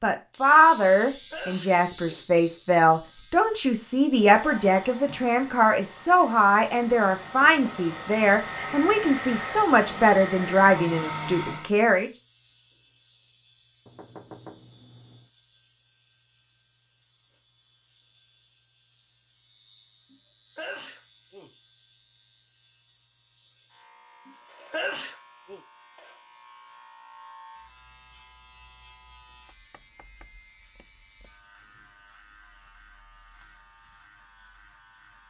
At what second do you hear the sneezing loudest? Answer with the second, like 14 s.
25 s.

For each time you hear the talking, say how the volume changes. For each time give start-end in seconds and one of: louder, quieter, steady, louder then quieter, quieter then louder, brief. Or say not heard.
0.0-12.1 steady.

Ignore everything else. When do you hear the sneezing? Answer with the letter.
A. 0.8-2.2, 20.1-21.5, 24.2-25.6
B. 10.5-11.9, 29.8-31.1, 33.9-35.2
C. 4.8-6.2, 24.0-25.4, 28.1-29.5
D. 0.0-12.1
A.